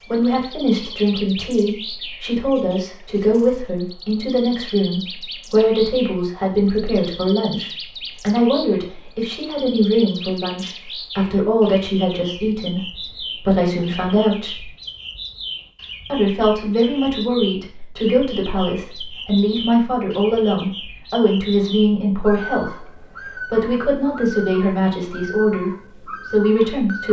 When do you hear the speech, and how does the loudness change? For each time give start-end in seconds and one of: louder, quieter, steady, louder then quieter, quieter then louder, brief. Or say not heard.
0.1-14.7 steady
16.1-27.0 steady.